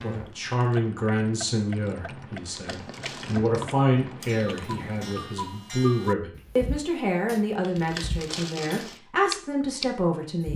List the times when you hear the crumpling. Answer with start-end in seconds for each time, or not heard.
2.4-3.4, 7.6-9.0.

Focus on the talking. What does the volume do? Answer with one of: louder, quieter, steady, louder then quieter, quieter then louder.
steady.